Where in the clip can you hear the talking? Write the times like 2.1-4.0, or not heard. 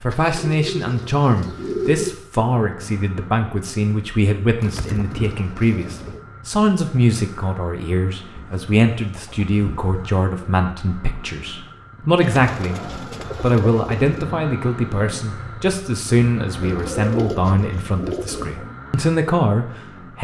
0.0-20.1.